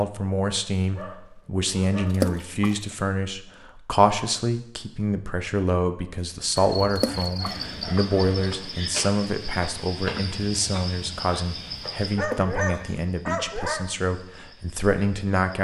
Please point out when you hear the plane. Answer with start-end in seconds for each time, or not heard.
not heard.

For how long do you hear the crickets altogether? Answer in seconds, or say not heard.
9 s.